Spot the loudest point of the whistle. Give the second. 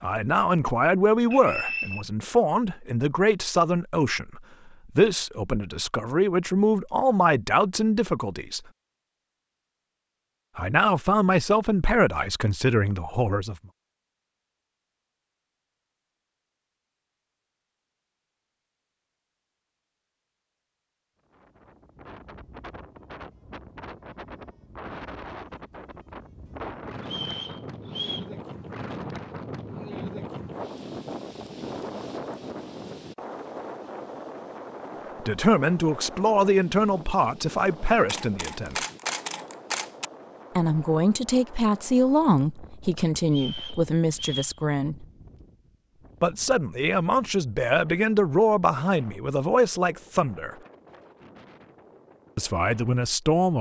2 s.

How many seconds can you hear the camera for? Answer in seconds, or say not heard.
2 s.